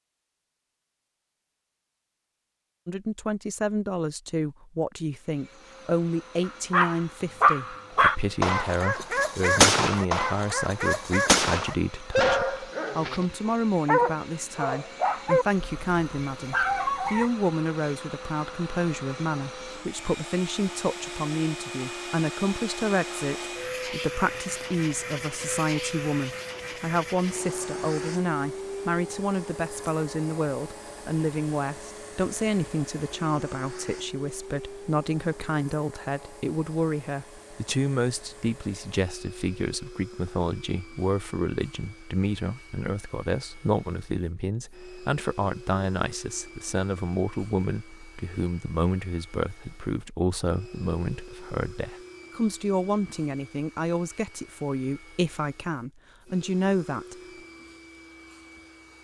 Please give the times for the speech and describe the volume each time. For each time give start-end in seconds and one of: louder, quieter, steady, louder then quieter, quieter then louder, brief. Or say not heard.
2.9-57.1 steady.